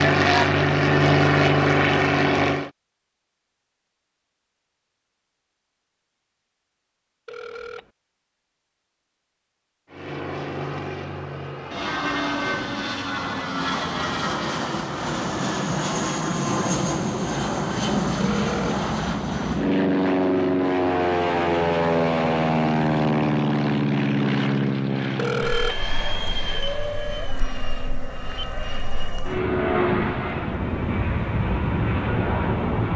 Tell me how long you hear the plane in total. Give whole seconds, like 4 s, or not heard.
26 s.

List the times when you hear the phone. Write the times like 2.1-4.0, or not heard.
7.2-7.9, 18.2-18.9, 25.1-25.9.